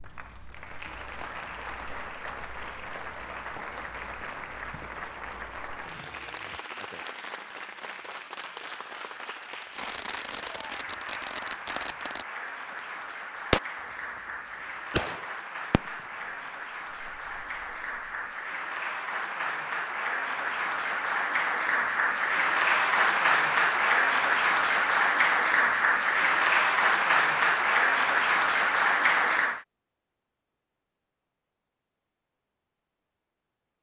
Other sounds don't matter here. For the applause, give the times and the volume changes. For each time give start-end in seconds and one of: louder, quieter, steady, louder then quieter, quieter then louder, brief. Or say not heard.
0.0-29.6 louder.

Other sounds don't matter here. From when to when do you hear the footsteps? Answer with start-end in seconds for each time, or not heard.
not heard.